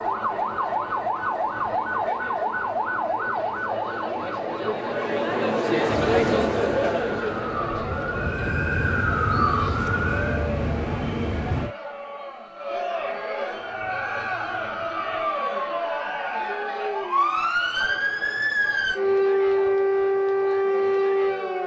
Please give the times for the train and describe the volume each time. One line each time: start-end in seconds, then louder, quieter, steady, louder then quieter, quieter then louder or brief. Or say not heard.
5.8-11.8 louder.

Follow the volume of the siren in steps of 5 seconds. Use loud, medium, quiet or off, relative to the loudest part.
medium, medium, medium, loud, loud.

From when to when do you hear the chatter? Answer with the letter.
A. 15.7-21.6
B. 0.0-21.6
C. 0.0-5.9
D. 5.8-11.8
B.